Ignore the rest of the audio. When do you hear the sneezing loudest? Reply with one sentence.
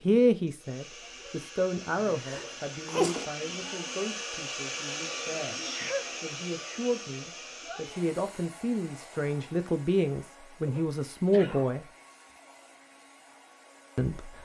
The loudest moment of the sneezing is at 3 seconds.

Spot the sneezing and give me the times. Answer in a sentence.
You can hear the sneezing from 2.0 to 3.2 s, from 5.6 to 6.2 s and from 10.7 to 11.8 s.